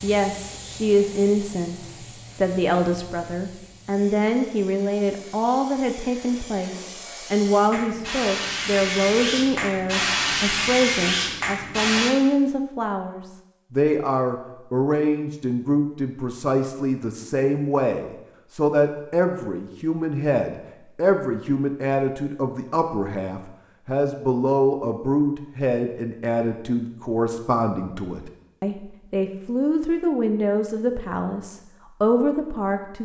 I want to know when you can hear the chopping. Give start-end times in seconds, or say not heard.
not heard.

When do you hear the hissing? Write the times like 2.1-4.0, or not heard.
0.0-12.2.